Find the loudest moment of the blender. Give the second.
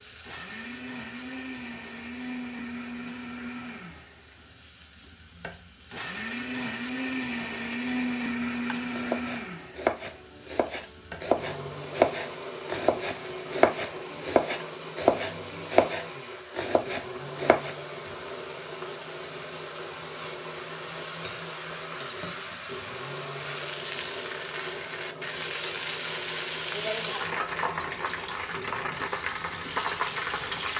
8 s.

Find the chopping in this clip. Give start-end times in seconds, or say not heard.
8.7-17.8.